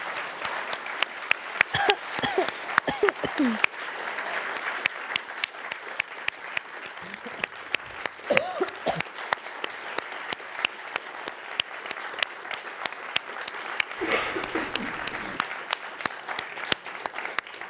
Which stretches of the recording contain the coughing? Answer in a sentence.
You can hear the coughing from 1.7 to 3.6 s, from 7.0 to 7.6 s, from 8.3 to 9.0 s and from 14.0 to 15.4 s.